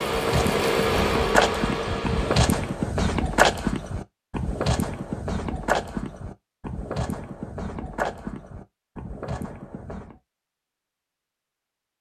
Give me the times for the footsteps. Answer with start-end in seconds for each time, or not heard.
0.1-10.2.